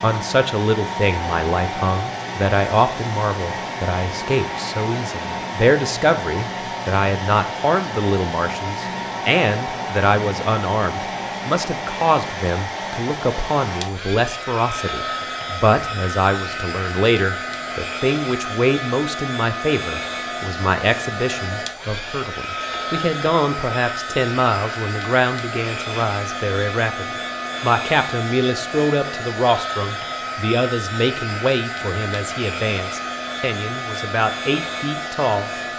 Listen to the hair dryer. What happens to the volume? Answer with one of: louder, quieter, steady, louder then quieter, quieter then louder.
steady.